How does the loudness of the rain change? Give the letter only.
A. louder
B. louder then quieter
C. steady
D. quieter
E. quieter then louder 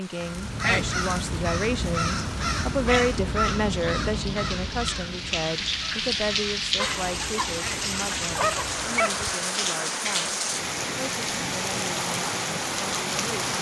A.